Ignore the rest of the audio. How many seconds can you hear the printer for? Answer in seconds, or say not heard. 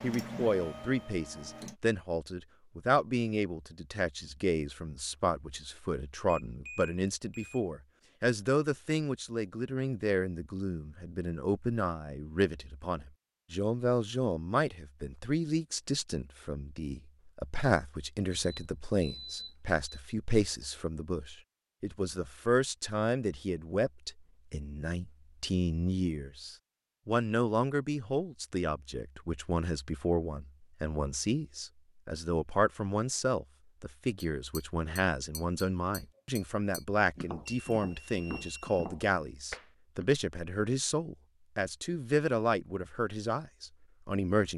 2 s.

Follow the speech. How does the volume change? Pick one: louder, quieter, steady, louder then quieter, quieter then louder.
steady.